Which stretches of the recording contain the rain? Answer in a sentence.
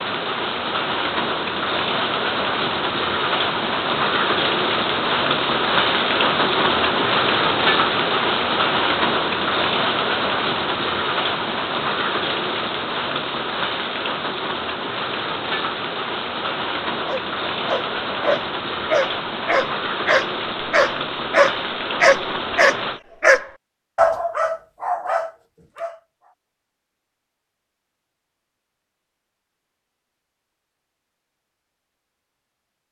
The rain can be heard from 0.0 to 23.0 s.